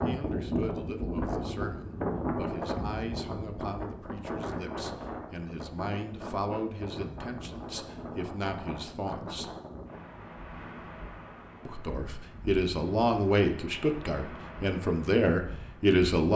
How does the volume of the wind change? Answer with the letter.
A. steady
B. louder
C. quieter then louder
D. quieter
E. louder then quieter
D.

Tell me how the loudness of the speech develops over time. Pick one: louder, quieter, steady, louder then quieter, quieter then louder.
louder.